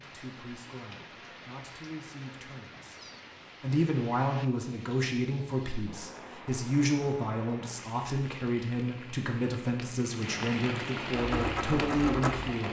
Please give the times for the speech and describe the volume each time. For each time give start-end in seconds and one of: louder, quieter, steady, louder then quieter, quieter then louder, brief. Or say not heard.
0.0-12.6 louder.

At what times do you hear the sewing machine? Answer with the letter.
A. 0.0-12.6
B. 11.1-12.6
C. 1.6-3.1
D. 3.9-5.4
B.